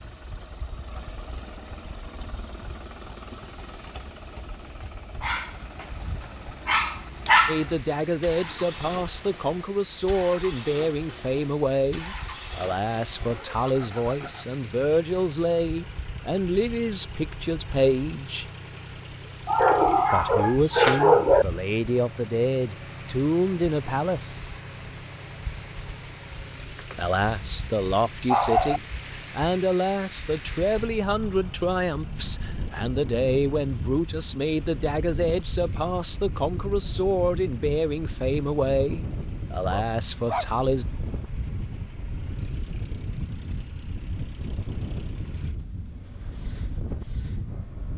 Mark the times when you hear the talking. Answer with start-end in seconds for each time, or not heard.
7.5-18.4, 20.1-24.4, 26.9-40.9.